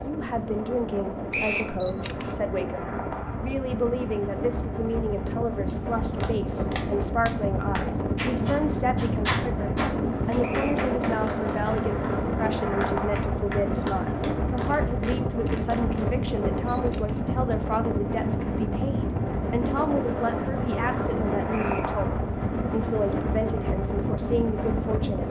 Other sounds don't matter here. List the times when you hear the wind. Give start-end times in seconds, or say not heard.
0.0-25.2.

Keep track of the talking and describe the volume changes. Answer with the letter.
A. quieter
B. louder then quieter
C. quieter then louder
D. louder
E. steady
E.